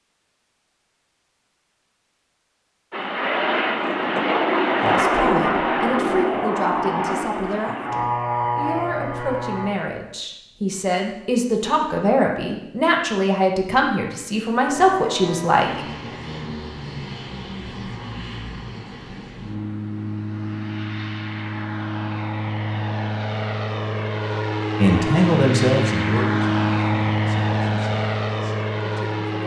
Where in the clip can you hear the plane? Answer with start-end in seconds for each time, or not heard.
2.9-9.7, 14.7-29.4.